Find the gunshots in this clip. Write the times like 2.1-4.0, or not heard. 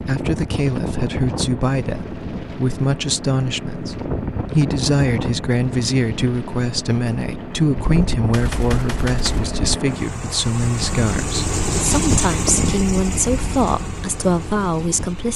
7.8-9.8.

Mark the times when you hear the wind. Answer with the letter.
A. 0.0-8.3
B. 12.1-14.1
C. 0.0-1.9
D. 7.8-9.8
A.